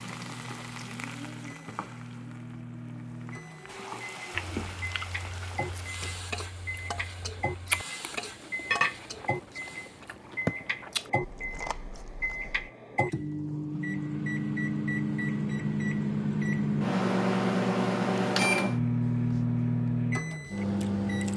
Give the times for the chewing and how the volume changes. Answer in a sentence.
You can hear the chewing from 4.3 to 12.7 s, getting louder then quieter.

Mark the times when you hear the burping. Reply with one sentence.
You can't hear the burping here.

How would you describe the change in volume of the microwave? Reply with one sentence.
The loudness of the microwave goes up.